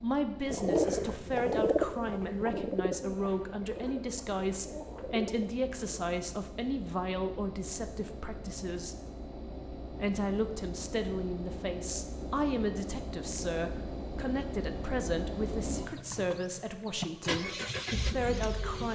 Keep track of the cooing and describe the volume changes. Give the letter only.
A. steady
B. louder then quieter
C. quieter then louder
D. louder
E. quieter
E.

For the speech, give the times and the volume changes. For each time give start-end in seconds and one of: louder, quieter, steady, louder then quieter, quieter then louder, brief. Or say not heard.
0.0-8.9 steady
9.8-18.8 steady.